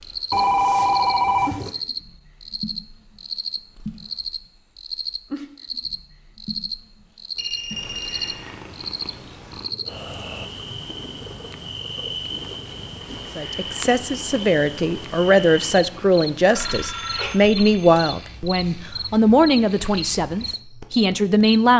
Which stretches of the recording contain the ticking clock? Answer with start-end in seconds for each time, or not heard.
not heard.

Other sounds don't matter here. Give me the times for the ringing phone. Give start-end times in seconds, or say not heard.
0.3-1.7, 7.3-8.3, 16.6-18.0.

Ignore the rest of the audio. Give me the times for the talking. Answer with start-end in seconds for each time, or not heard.
13.3-21.7.